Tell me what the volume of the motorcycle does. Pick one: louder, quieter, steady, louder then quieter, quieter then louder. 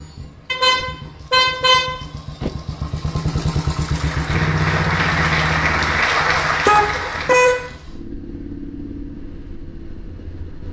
louder then quieter.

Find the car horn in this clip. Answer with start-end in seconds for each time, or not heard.
0.5-2.5, 6.7-7.7.